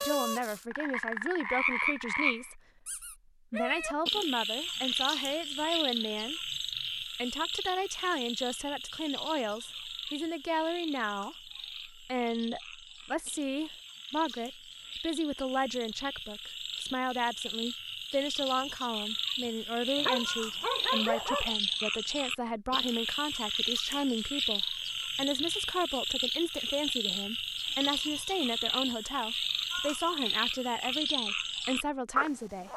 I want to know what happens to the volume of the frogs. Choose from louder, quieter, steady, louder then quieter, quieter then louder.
quieter then louder.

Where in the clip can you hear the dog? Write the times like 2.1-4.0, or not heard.
19.9-21.6.